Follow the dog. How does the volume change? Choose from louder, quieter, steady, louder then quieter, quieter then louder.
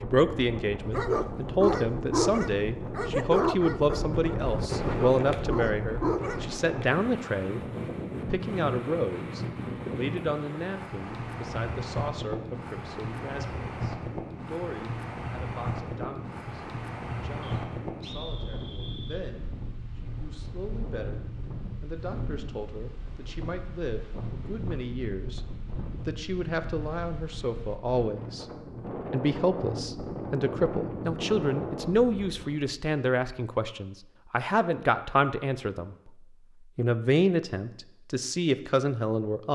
quieter then louder.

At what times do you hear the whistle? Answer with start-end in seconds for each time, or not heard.
17.4-19.2.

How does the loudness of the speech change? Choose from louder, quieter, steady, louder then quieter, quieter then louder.
quieter then louder.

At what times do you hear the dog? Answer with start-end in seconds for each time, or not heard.
0.9-6.5.